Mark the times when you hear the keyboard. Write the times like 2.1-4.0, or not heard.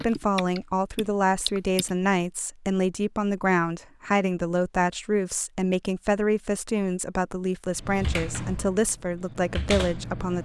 0.0-1.9, 7.8-10.3.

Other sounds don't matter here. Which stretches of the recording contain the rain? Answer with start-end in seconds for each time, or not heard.
not heard.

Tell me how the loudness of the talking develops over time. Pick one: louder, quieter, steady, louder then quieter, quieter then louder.
steady.